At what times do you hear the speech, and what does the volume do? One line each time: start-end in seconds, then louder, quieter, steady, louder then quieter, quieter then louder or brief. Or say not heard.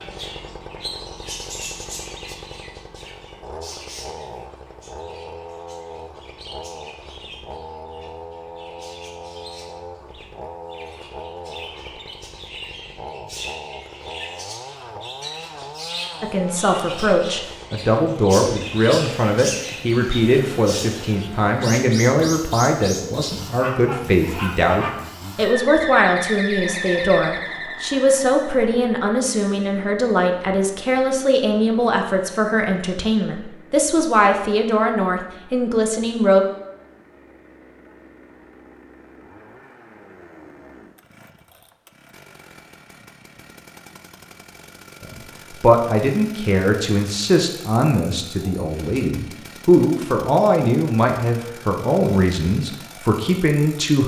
16.2-36.5 steady
45.0-54.0 steady.